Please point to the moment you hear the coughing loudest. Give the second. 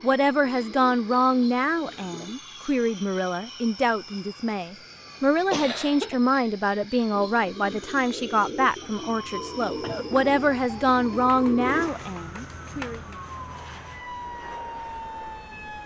6 s.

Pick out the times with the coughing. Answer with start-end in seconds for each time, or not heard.
5.5-6.2, 9.7-10.2.